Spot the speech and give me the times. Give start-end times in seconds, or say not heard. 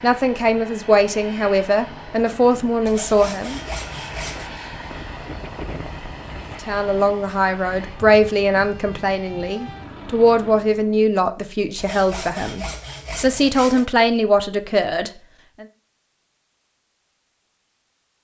0.0-3.6, 6.7-15.7.